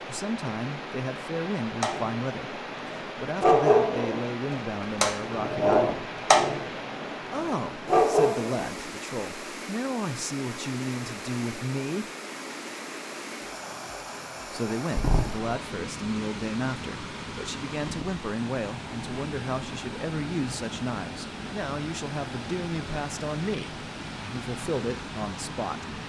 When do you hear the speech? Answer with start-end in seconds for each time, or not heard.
0.0-6.1, 7.2-12.1, 14.5-25.9.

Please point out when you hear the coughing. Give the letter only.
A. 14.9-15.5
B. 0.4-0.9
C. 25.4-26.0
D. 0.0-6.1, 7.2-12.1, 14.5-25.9
A.